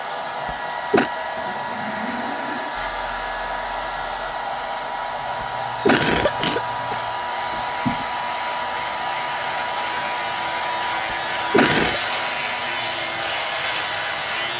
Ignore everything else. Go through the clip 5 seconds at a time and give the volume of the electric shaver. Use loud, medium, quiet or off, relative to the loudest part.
medium, medium, loud.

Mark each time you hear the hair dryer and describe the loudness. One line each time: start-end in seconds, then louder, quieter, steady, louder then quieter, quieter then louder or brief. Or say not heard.
0.0-14.5 steady.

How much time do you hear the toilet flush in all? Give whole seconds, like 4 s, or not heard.
2 s.